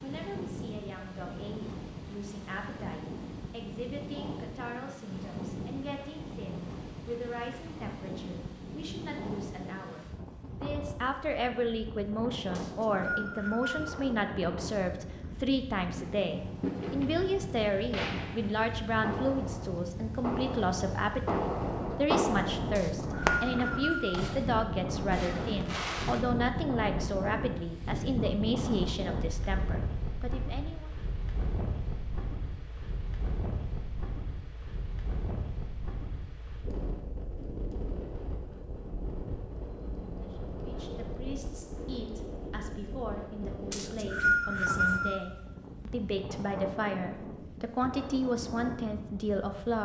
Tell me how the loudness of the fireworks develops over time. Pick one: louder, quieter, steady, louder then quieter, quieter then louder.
louder then quieter.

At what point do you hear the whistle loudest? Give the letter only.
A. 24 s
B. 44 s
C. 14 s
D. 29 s
B.